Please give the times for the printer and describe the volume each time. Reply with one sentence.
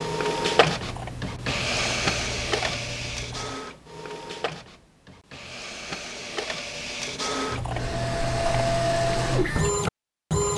You can hear the printer from 0.0 to 10.5 s, getting quieter then louder.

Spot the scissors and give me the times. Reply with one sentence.
You can hear the scissors from 0.8 to 3.5 s and from 7.5 to 8.7 s.